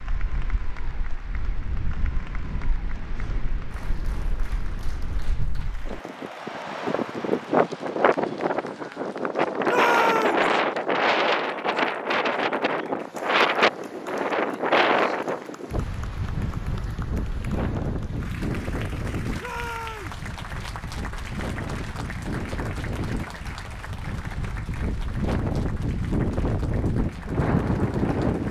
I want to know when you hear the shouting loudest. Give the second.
10 s.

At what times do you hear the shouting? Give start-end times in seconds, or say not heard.
9.7-10.4, 19.4-20.1.